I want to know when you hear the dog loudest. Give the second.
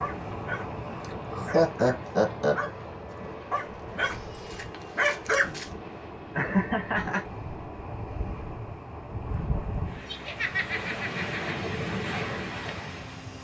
5 s.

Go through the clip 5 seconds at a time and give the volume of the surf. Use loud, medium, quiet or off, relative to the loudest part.
medium, medium, loud.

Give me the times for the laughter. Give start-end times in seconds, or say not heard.
1.3-2.5, 6.3-7.2, 10.1-11.4.